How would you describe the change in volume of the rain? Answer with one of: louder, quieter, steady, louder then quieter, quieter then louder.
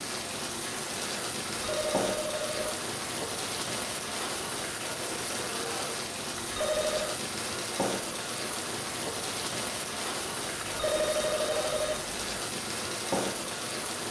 steady.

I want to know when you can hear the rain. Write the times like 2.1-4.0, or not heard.
0.0-14.0.